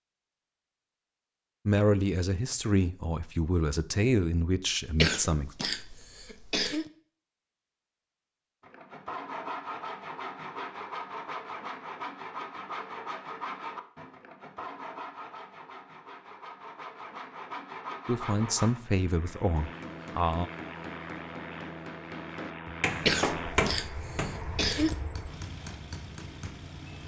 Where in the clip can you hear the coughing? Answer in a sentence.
You can hear the coughing from 5.0 to 6.8 s and from 23.1 to 24.9 s.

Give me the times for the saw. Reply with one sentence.
You can hear the saw from 8.6 to 18.8 s.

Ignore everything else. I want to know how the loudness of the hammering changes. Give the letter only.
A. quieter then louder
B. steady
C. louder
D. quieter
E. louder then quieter
E.